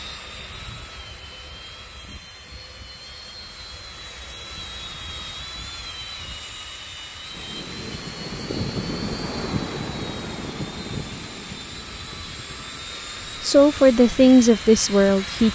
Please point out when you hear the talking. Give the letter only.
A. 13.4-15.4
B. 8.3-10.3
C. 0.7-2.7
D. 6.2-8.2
A.